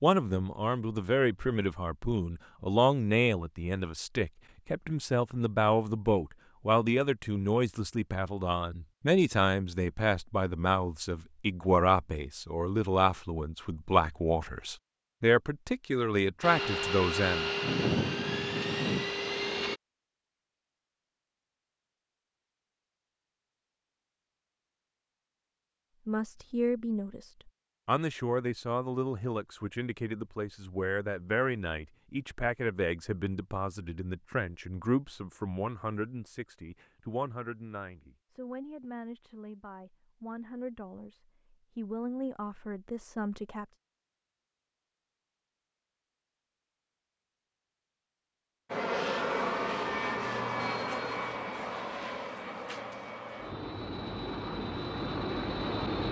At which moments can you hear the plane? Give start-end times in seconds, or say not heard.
16.4-19.8, 48.7-56.0.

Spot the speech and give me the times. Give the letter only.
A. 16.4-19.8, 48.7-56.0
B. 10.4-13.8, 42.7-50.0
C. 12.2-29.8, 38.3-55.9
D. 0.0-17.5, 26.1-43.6
D.